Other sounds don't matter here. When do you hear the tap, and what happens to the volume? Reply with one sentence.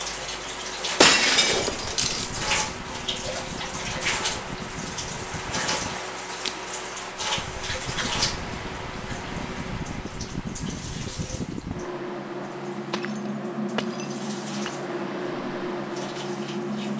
The tap can be heard from 0.0 to 16.9 s, getting quieter.